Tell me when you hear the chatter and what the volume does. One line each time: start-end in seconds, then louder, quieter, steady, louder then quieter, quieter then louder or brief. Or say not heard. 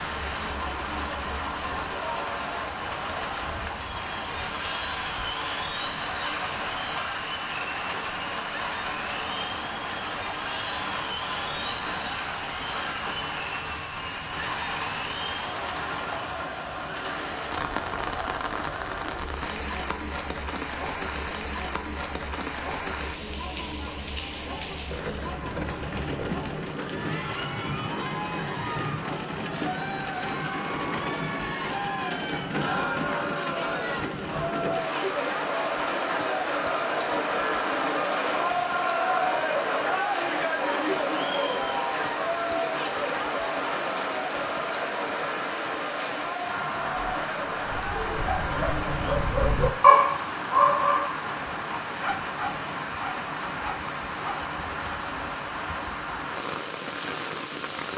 0.0-49.1 louder.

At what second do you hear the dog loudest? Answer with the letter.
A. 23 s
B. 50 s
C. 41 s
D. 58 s
B.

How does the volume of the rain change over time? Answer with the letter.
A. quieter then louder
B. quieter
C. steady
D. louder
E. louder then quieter
C.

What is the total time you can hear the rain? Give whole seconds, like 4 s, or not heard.
58 s.